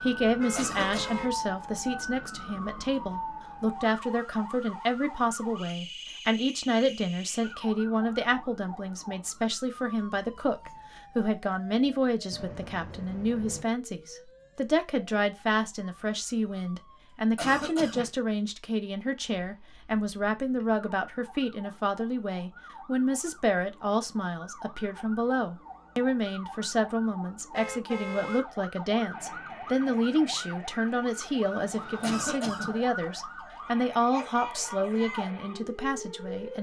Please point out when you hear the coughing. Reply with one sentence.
You can hear the coughing from 0.6 to 1.2 s, from 17.4 to 18.1 s and from 32.0 to 32.8 s.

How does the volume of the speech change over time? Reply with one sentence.
The volume of the speech stays about the same.